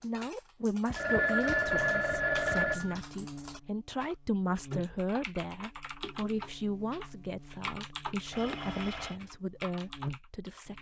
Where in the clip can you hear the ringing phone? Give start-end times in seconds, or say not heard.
0.9-3.0, 8.3-9.2.